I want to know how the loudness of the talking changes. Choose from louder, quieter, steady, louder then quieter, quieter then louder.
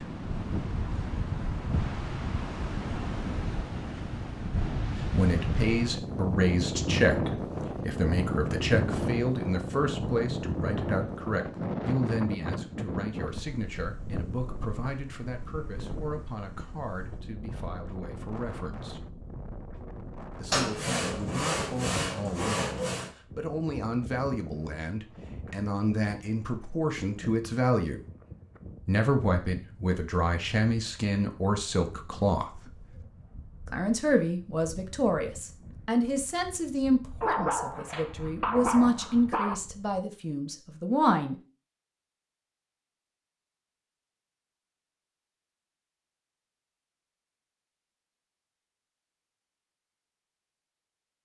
quieter then louder.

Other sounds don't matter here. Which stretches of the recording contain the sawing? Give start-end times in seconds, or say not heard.
20.5-23.1.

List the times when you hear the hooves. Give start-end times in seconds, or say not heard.
not heard.